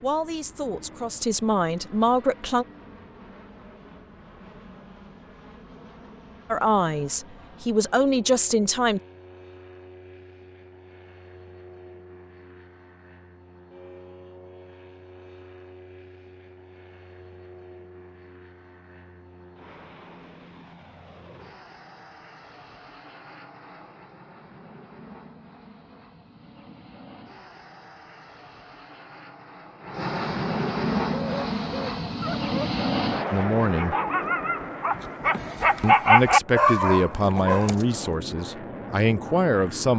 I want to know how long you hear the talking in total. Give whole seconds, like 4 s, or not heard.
10 s.